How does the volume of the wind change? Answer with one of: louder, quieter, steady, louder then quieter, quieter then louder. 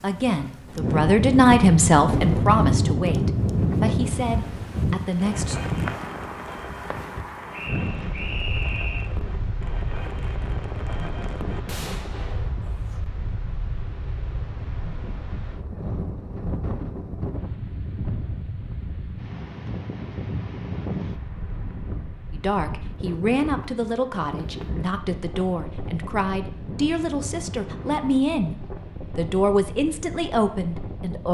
quieter.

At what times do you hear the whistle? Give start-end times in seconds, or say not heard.
7.5-9.1.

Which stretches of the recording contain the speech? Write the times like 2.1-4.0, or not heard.
0.0-5.5, 22.3-28.6, 29.1-31.2.